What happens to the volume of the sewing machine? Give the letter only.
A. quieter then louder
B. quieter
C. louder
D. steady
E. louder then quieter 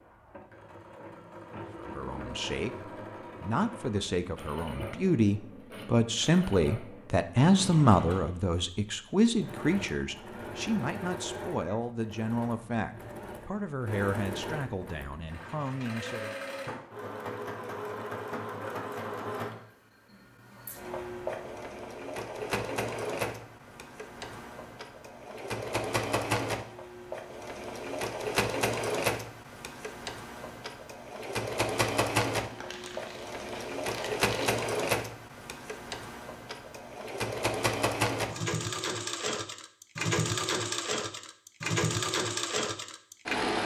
C.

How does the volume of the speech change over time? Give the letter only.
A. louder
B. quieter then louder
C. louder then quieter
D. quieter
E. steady
C.